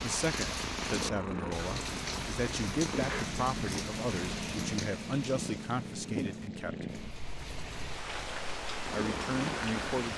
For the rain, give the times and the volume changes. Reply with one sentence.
You can hear the rain from 0.0 to 10.1 s, getting quieter then louder.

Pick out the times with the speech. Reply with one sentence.
You can hear the speech from 0.0 to 6.8 s and from 8.9 to 10.1 s.